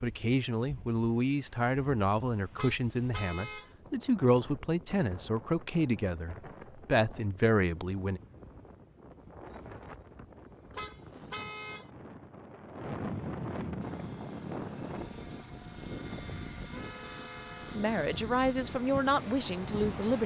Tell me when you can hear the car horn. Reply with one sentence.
You can hear the car horn from 2.5 to 3.8 s, from 10.8 to 11.9 s and from 16.7 to 17.8 s.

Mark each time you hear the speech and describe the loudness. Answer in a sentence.
You can hear the speech from 0.0 to 8.2 s, at a steady volume; and briefly from 17.8 to 20.2 s.